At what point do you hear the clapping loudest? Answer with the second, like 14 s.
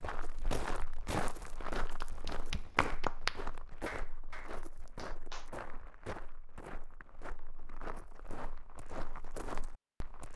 3 s.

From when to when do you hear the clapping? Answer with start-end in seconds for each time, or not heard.
2.0-5.5.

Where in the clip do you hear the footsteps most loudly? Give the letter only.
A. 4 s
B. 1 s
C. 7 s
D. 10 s
B.